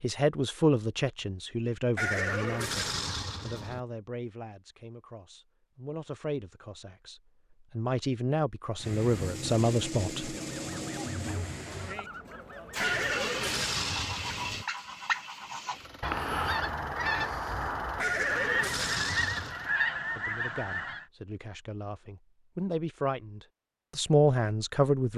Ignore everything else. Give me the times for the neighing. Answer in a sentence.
The neighing can be heard from 1.9 to 3.8 s, from 12.8 to 14.7 s and from 17.9 to 19.6 s.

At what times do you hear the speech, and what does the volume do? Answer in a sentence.
The speech can be heard from 0.0 to 10.3 s, getting quieter then louder; and from 20.1 to 25.1 s, getting louder.